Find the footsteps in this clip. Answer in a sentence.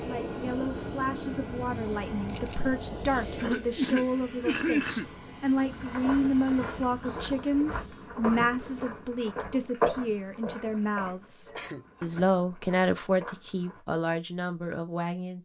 The footsteps can be heard from 5.6 to 13.8 s.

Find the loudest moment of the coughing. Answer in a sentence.
The loudest moment of the coughing is at 5 seconds.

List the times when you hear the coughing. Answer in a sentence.
The coughing can be heard from 3.4 to 5.0 s and from 11.4 to 12.1 s.